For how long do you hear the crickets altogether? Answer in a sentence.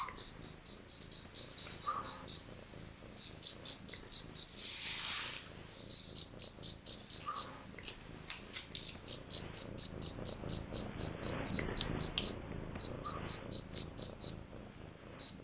The crickets can be heard for 15 seconds in total.